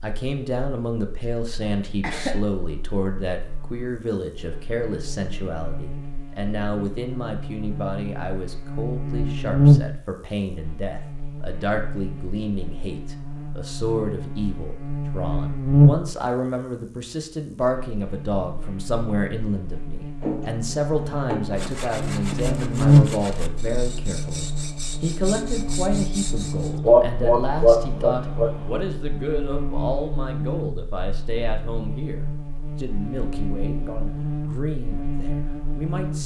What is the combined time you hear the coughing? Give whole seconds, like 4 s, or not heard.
4 s.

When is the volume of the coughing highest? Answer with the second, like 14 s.
27 s.